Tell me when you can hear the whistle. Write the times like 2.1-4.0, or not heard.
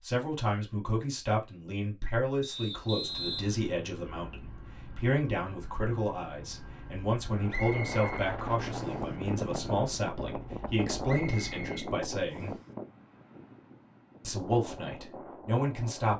2.4-3.5, 7.5-9.1, 11.1-12.7.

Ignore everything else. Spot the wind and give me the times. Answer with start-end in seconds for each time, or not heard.
7.3-16.1.